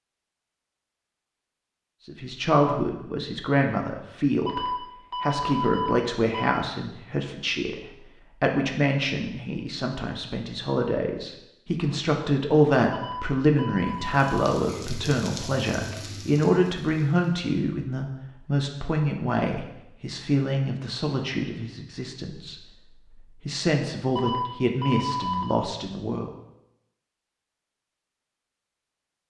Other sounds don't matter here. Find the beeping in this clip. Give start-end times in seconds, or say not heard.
4.5-6.5, 12.9-14.2, 24.1-25.5.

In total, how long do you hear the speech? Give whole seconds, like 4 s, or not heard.
24 s.